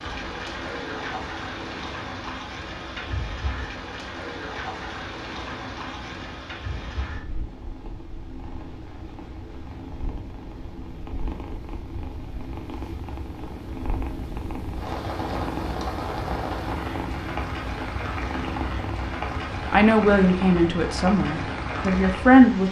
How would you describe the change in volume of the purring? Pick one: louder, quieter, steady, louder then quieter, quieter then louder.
louder.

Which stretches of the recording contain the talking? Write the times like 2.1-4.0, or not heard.
19.7-22.6.